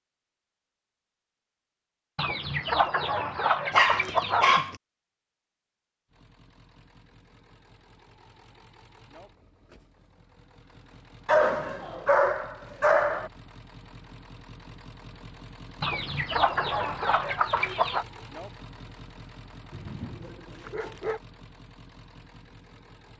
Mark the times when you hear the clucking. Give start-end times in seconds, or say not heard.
2.1-4.6, 15.8-18.1.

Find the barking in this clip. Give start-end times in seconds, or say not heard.
3.7-4.8, 11.2-13.3, 19.7-21.2.